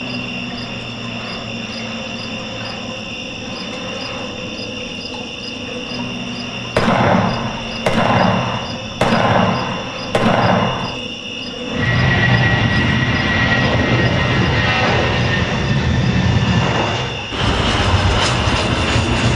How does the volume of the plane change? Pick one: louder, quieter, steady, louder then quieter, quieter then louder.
louder.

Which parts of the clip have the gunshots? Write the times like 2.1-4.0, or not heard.
6.8-10.9.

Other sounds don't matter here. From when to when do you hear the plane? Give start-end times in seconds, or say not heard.
0.0-19.3.